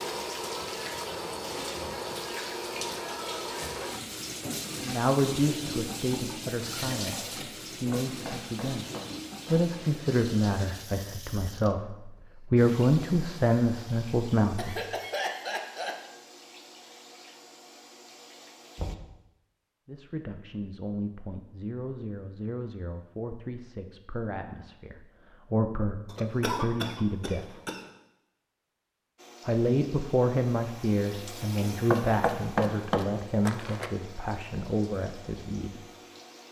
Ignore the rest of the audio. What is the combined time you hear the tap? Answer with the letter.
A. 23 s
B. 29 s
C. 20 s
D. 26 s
D.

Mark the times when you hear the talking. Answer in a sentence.
The talking can be heard from 4.8 to 8.8 s, from 9.4 to 14.8 s, from 19.9 to 27.5 s and from 29.4 to 35.8 s.